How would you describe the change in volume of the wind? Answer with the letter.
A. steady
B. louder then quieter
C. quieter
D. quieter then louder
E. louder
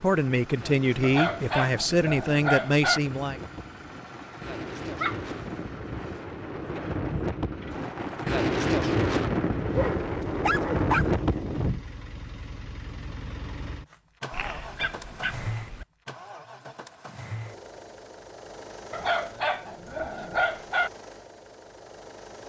E.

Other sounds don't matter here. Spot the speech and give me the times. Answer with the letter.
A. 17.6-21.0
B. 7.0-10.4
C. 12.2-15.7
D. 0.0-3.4
D.